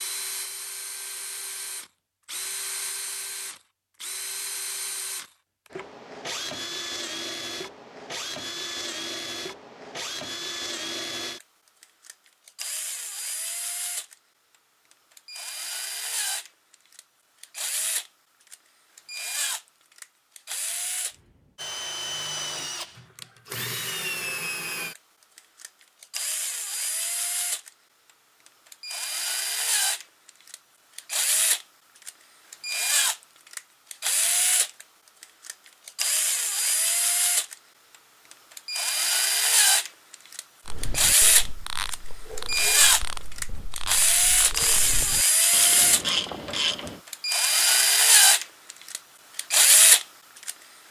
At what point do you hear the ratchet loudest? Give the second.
46 s.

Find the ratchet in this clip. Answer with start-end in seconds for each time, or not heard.
40.6-47.0.